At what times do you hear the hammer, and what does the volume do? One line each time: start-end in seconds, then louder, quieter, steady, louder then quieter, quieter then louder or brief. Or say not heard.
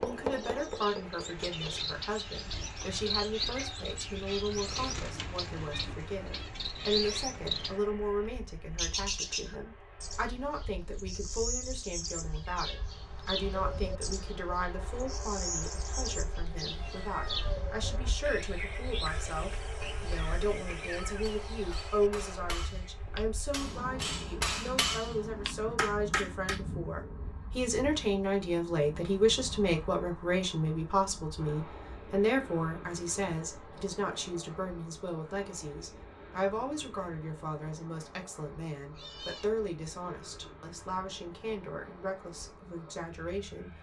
0.0-1.9 brief
19.2-26.6 louder.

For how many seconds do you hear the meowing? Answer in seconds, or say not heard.
2 s.